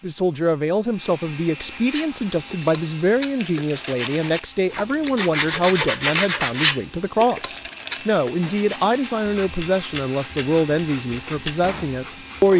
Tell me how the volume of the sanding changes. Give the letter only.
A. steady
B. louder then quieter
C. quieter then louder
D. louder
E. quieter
B.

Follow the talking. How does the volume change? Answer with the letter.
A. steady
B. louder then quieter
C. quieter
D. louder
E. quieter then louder
A.